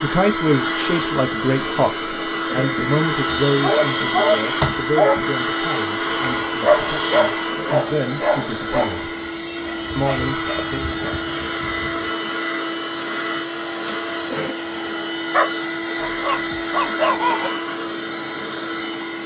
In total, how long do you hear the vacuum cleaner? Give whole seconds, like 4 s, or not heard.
19 s.